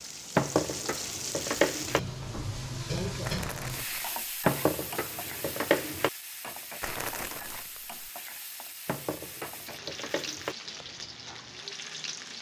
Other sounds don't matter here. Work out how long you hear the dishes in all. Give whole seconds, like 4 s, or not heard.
5 s.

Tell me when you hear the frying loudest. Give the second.
3 s.